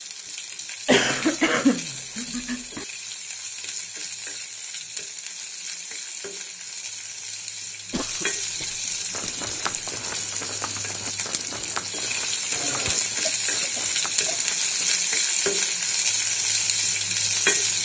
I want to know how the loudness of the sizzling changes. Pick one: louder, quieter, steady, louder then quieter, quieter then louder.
louder.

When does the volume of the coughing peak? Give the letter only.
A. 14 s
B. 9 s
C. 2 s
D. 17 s
C.